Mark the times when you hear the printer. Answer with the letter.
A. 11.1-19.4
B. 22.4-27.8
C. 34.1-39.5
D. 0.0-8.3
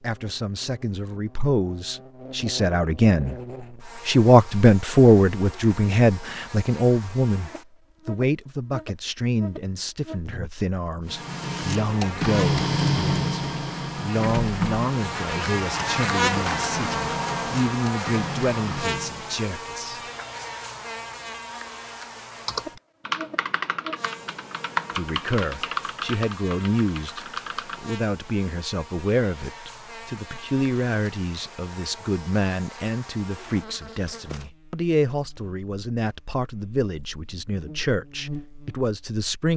A.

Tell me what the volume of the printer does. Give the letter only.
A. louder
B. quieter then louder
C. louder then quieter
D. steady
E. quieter
E.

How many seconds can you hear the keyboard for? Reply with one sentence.
You can hear the keyboard for 5 seconds altogether.